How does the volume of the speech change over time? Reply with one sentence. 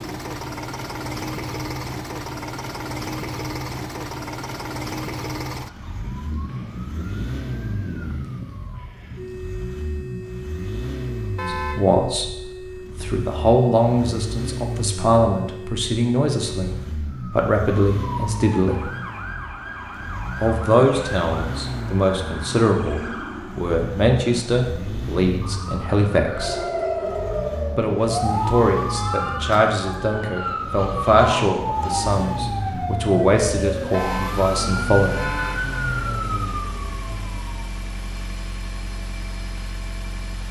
The loudness of the speech stays about the same.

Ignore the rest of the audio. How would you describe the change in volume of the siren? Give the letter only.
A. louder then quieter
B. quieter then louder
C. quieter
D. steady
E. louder
E.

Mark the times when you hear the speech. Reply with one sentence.
The speech can be heard from 11.4 to 18.9 s, from 20.4 to 26.6 s and from 27.8 to 35.2 s.